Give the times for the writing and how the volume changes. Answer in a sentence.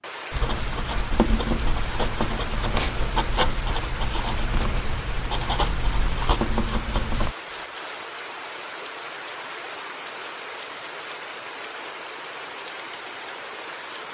The writing can be heard from 0.3 to 7.3 s, at a steady volume.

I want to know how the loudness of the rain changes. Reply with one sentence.
The loudness of the rain stays about the same.